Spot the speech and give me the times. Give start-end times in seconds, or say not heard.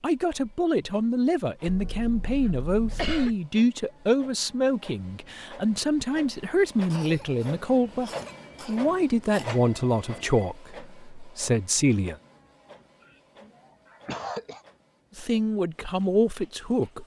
0.0-12.2, 15.2-17.0.